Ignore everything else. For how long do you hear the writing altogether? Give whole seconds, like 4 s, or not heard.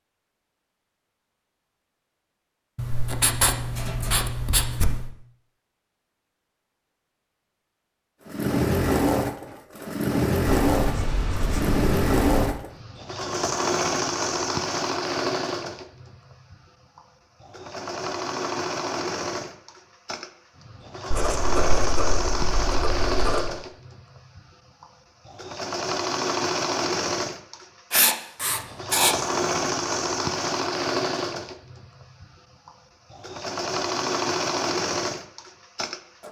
8 s.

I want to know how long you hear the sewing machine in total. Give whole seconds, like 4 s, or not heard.
28 s.